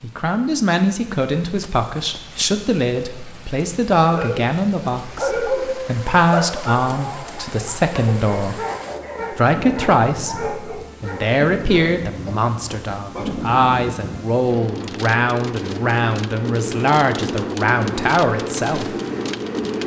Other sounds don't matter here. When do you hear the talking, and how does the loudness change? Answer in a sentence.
The talking can be heard from 0.0 to 8.6 s, at a steady volume; and from 9.3 to 18.9 s, at a steady volume.